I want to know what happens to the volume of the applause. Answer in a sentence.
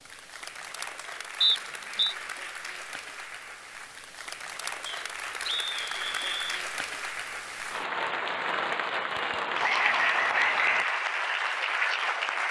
The loudness of the applause goes up.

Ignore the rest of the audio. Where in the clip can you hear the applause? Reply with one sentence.
The applause can be heard from 0.0 to 12.4 s.